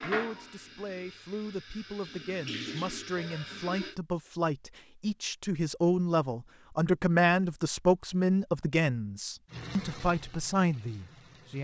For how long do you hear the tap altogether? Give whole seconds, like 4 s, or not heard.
6 s.